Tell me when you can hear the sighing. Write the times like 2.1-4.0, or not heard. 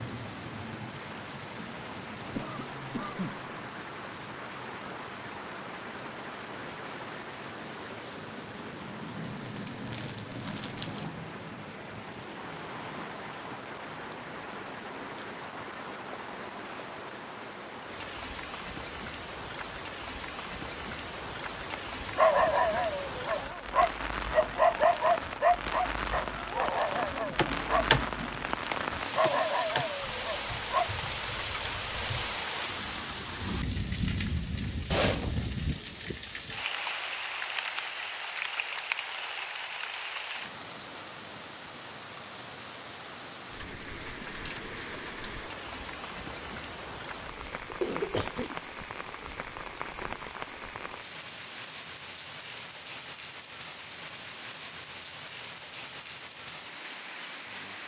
not heard.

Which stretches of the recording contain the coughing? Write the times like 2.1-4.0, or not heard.
2.4-3.5, 34.9-35.5, 47.4-48.9.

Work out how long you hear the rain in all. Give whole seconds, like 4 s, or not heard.
58 s.